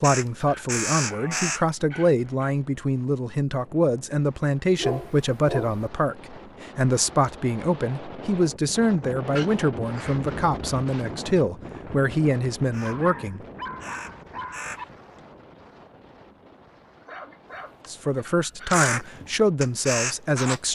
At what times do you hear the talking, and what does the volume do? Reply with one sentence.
You can hear the talking from 0.0 to 13.4 s, at a steady volume; and briefly from 17.9 to 20.7 s.